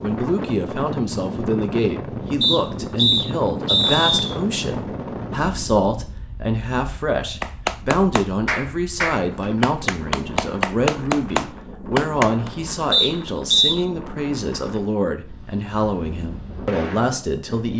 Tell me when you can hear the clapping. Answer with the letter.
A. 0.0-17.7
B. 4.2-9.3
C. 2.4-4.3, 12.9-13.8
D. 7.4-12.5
D.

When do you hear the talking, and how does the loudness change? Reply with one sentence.
You can hear the talking from 0.0 to 17.7 s, at a steady volume.